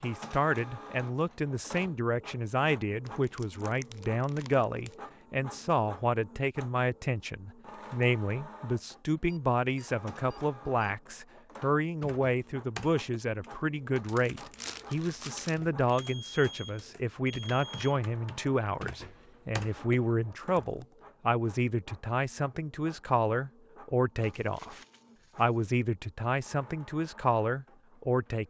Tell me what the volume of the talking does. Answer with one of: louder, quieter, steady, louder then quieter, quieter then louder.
steady.